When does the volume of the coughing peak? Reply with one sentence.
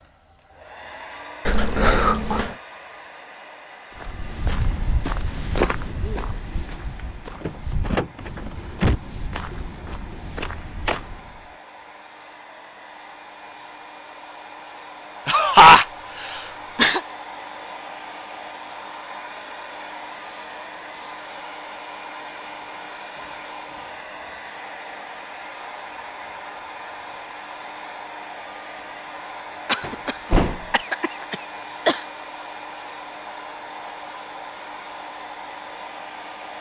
The volume of the coughing peaks at 16 seconds.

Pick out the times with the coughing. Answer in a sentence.
You can hear the coughing from 1.4 to 2.5 s, from 15.2 to 17.0 s and from 29.6 to 32.0 s.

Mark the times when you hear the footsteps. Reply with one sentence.
The footsteps can be heard from 4.0 to 11.6 s.